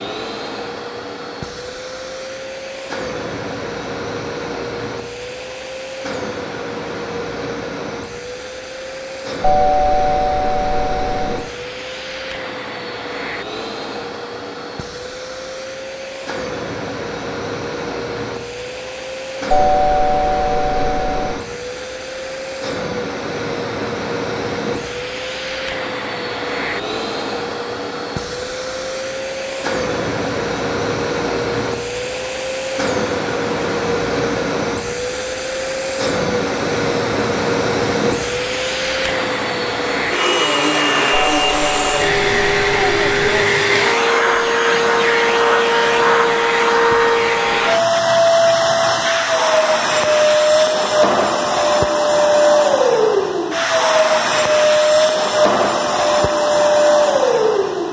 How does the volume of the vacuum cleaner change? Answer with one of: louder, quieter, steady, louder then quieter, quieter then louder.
louder.